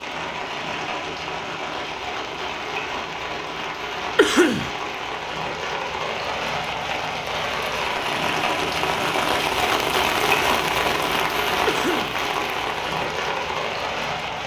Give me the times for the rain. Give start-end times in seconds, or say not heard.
0.0-14.4.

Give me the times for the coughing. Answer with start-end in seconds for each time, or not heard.
4.2-4.7, 11.7-12.2.